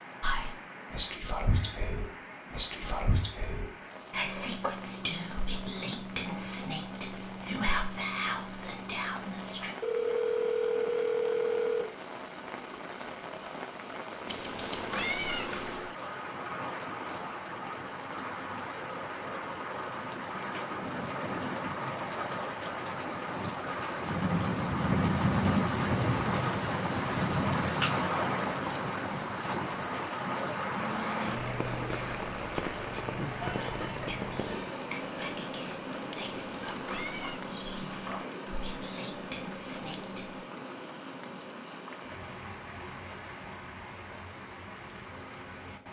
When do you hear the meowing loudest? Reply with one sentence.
The volume of the meowing peaks at 15 seconds.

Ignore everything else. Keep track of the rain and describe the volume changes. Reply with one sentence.
The loudness of the rain goes up, then down.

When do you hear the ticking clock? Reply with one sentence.
You can't hear the ticking clock here.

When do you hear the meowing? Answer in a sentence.
You can hear the meowing from 14.2 to 15.9 s and from 36.5 to 37.5 s.